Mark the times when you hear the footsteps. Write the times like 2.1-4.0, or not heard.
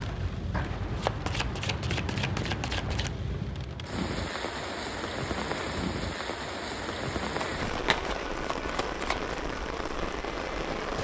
not heard.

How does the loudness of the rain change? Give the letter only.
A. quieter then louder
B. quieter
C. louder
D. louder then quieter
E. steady
E.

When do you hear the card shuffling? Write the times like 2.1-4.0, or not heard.
0.5-3.1, 7.3-9.3.